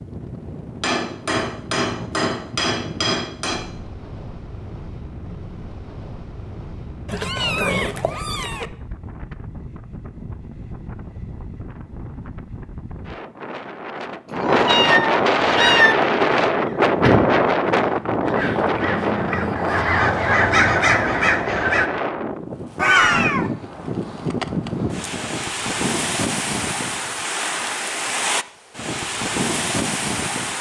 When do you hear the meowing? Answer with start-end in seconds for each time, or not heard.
7.0-8.7, 14.3-15.9, 22.8-23.5.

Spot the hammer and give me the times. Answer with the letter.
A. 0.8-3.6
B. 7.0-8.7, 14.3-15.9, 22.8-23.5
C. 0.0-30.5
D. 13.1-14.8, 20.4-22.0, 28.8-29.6
A.